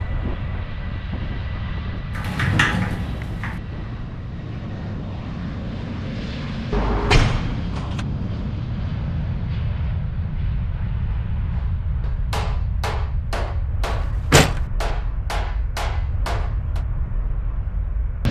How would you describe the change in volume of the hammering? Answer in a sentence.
The volume of the hammering stays about the same.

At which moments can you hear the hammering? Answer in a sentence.
The hammering can be heard from 11.5 to 16.9 s.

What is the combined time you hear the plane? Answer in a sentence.
You can hear the plane for 18 seconds altogether.